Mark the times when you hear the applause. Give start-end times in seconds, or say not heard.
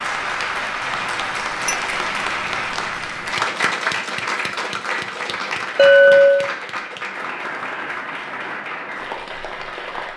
0.0-10.1.